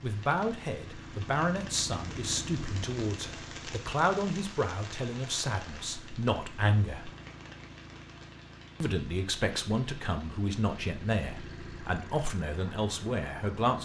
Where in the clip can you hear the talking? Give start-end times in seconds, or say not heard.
0.0-7.1, 8.8-13.8.